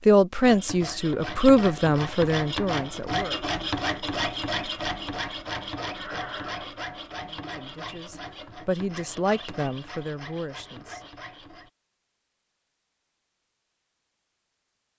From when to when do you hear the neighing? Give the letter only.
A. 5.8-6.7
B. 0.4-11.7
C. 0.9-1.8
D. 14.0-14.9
A.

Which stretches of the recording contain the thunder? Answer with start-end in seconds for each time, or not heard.
not heard.